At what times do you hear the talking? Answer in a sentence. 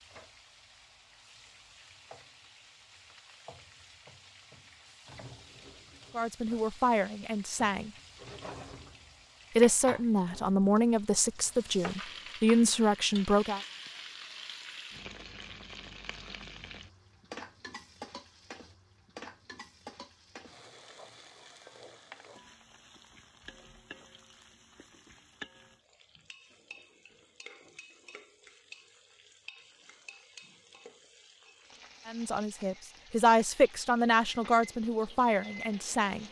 The talking can be heard from 6.2 to 7.9 s, from 9.6 to 13.6 s and from 32.0 to 36.2 s.